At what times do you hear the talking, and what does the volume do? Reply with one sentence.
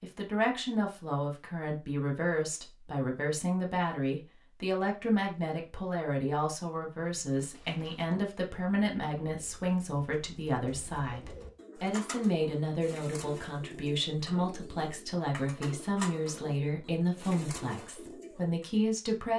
The talking can be heard from 0.0 to 19.3 s, at a steady volume.